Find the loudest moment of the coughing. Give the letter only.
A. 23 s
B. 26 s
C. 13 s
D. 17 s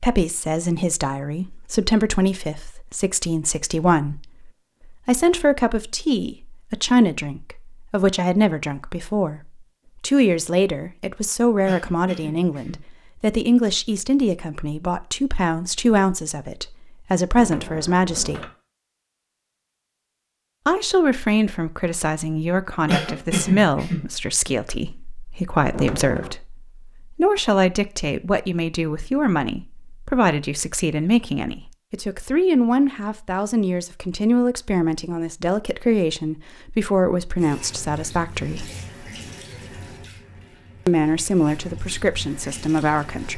A.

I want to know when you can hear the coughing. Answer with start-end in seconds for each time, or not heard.
11.7-12.8, 22.9-24.1.